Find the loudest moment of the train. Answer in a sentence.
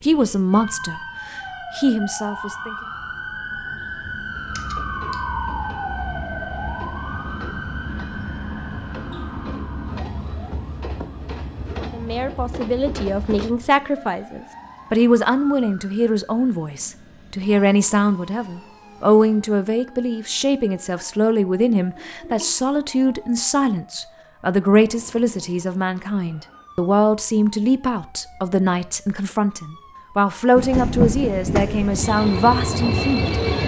The loudest moment of the train is at 31 seconds.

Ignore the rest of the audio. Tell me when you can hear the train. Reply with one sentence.
The train can be heard from 4.3 to 13.5 s and from 30.6 to 33.6 s.